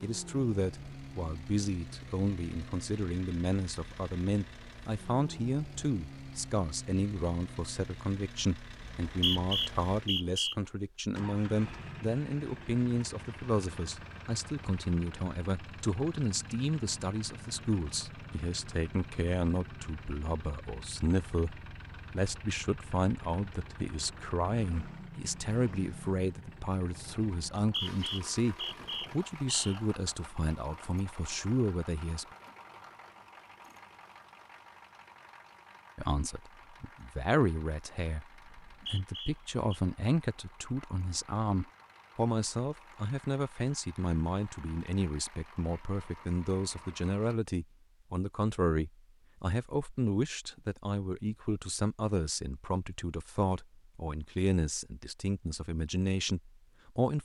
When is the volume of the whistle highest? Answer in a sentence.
The volume of the whistle peaks at 9 seconds.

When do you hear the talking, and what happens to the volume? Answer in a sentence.
You can hear the talking from 0.0 to 32.2 s, at a steady volume; and from 36.0 to 57.2 s, at a steady volume.